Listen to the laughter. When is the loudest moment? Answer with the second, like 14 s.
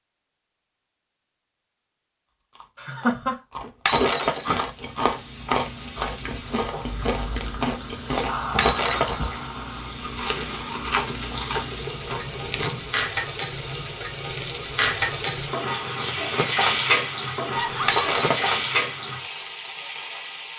3 s.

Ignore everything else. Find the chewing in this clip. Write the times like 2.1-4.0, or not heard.
2.5-13.0.